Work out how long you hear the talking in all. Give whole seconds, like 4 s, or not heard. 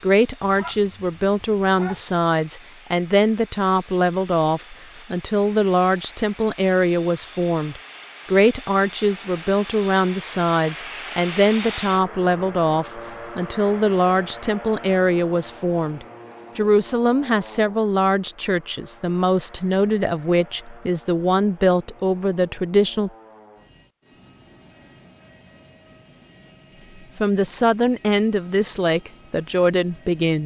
26 s.